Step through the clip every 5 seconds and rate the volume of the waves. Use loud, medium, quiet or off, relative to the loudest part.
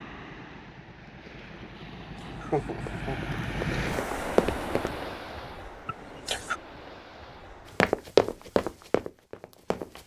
loud, medium.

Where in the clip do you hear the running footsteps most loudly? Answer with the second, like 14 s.
8 s.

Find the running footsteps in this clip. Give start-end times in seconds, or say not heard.
2.9-4.9, 7.8-10.0.